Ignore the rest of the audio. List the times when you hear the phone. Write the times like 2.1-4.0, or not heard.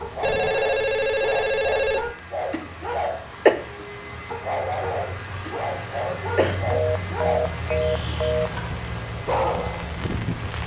0.2-2.1, 6.7-8.6.